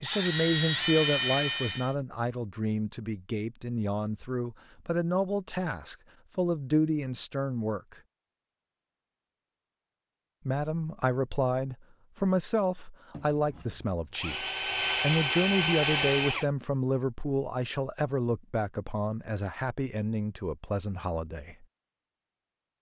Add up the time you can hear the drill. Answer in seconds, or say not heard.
5 s.